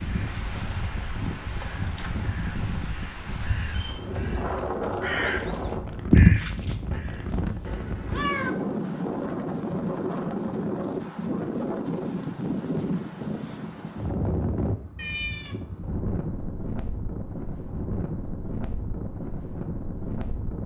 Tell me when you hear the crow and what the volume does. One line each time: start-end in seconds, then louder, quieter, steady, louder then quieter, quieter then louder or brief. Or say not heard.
0.0-7.8 louder.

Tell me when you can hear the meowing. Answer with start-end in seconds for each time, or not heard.
7.7-8.5, 14.9-15.6.